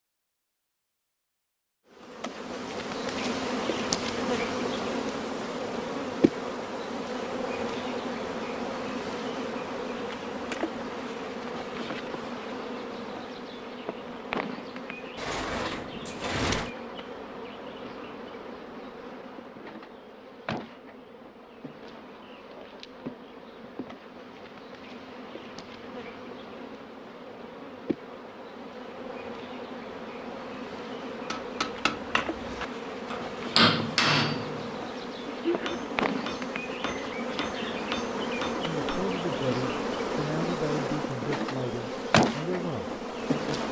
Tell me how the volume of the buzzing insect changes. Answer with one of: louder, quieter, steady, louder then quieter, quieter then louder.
quieter then louder.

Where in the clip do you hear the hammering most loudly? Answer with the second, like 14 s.
34 s.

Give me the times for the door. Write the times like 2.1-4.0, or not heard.
15.2-16.7.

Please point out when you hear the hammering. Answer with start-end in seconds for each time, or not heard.
31.3-39.1.